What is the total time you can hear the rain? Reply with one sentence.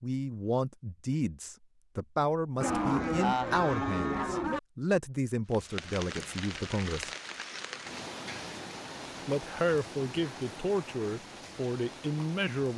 The rain can be heard for 7 seconds in total.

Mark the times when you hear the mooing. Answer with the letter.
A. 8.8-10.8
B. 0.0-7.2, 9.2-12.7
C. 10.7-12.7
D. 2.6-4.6
D.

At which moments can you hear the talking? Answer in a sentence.
The talking can be heard from 0.0 to 7.2 s and from 9.2 to 12.7 s.